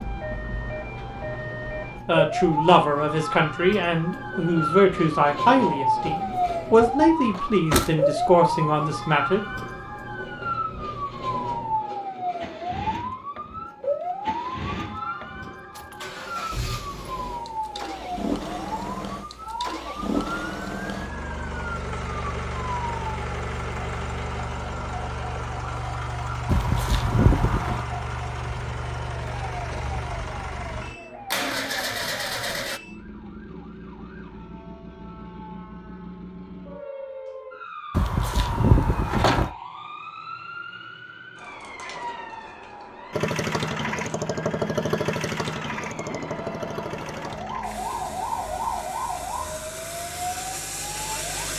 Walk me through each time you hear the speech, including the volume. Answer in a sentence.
You can hear the speech from 2.0 to 9.4 s, at a steady volume.